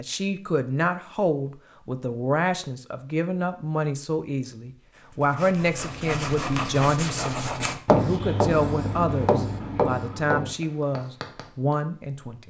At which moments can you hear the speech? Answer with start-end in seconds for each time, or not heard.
0.0-12.4.